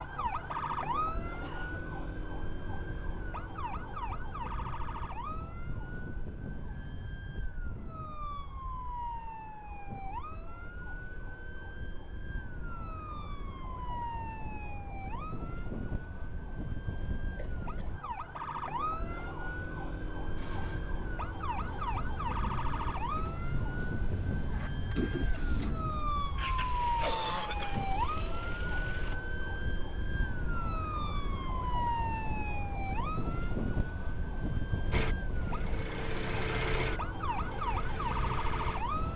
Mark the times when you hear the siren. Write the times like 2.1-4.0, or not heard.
0.0-39.1.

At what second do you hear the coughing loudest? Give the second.
27 s.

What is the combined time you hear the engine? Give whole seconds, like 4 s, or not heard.
13 s.